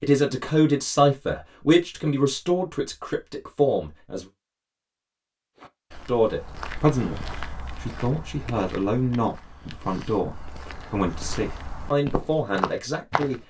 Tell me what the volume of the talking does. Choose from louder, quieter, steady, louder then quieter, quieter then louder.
quieter.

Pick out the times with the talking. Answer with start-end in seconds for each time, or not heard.
0.0-4.2, 6.0-13.4.